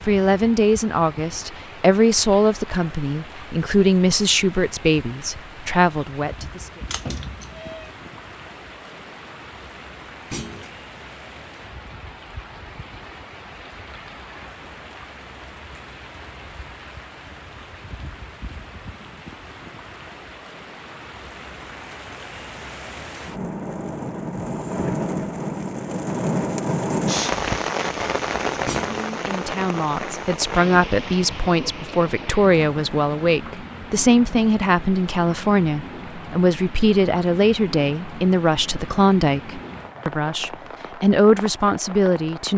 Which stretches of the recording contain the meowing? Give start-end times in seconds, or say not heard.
6.9-7.8.